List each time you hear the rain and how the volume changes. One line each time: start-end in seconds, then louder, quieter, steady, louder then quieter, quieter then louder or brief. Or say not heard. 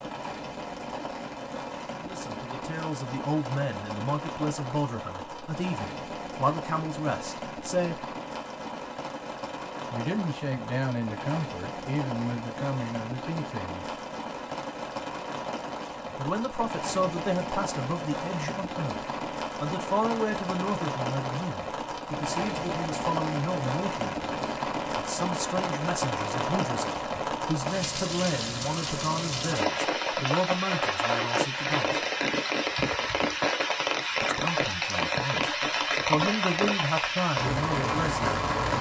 0.0-38.7 louder.